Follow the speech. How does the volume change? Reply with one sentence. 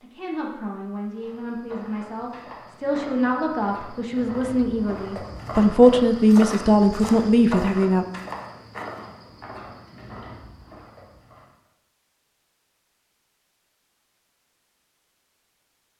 The volume of the speech goes up.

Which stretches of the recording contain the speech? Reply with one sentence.
You can hear the speech from 0.0 to 8.1 s.